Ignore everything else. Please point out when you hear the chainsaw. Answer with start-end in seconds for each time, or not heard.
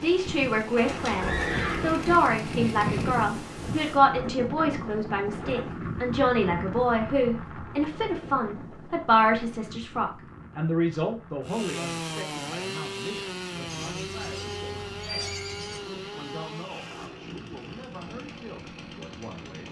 0.0-3.3, 11.4-19.6.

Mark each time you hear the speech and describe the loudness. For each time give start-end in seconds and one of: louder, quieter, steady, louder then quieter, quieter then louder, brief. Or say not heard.
0.0-19.6 quieter.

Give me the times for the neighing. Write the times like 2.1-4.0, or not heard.
0.8-2.2, 13.7-15.8.